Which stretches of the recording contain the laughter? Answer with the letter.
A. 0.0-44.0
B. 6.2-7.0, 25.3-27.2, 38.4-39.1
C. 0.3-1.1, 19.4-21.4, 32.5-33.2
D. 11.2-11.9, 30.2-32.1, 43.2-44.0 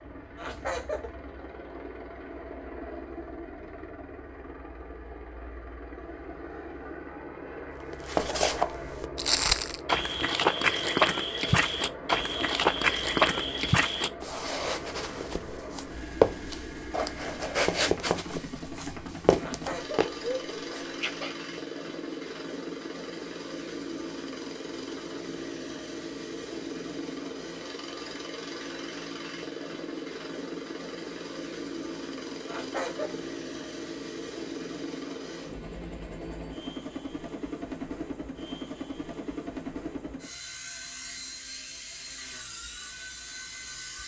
C.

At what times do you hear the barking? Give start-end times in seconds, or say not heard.
not heard.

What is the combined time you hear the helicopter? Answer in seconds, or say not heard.
44 s.